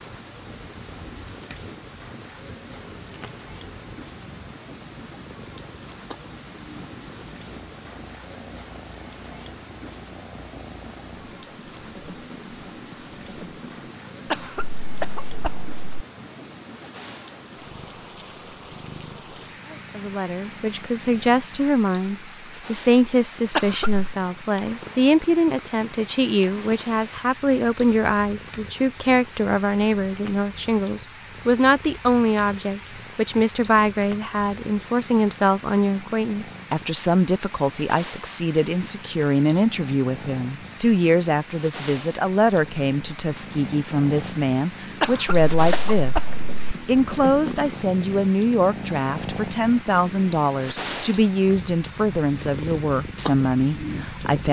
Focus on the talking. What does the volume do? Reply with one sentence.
The loudness of the talking stays about the same.